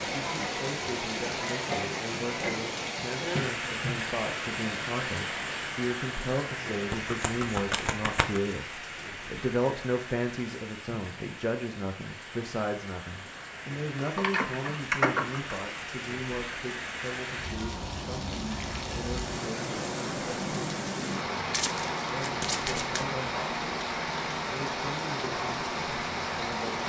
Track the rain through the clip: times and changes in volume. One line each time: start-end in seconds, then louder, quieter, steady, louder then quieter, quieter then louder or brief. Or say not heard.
0.0-26.8 quieter then louder.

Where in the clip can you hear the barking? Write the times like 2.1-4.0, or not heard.
not heard.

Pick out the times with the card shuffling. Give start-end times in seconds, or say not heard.
6.9-8.4, 21.5-23.2.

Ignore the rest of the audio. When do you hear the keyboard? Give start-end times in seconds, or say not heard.
13.9-15.8.